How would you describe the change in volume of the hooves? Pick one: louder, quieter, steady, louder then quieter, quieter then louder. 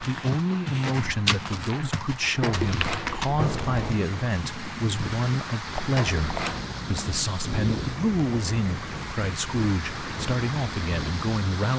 quieter.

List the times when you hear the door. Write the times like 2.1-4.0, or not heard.
2.4-4.0, 5.9-6.7.